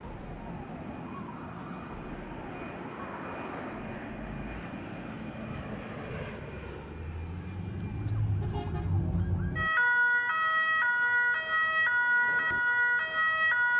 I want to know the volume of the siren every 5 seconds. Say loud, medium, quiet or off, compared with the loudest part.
quiet, medium, loud.